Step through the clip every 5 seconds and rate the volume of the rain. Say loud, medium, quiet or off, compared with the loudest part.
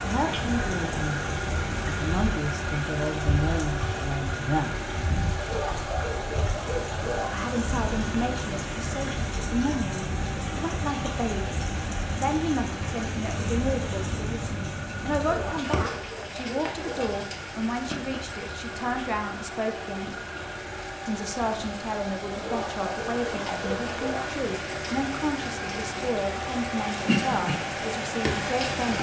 loud, loud, loud, medium, medium, loud.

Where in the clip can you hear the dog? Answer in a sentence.
You can hear the dog from 5.3 to 7.3 s, from 15.2 to 17.1 s and from 22.4 to 24.3 s.